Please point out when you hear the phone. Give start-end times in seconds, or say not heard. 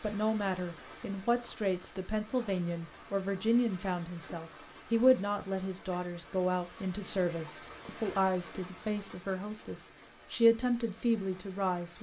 not heard.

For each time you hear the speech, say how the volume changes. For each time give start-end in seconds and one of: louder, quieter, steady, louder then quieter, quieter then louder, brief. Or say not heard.
0.0-11.9 steady.